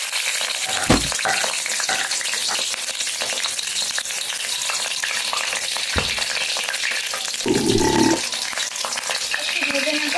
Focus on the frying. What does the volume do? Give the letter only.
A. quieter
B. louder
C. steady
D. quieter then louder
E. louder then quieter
C.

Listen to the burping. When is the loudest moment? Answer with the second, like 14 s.
8 s.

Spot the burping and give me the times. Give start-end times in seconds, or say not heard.
0.6-2.5, 7.5-8.2.